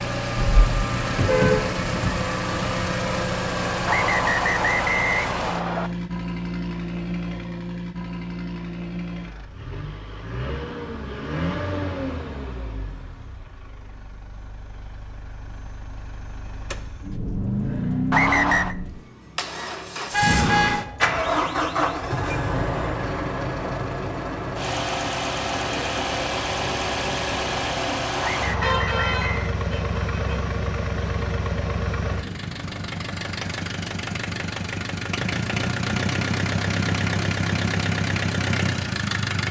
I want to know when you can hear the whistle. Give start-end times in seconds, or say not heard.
3.9-5.9, 18.1-18.8, 28.2-29.6.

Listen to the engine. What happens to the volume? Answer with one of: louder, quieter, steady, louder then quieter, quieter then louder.
quieter then louder.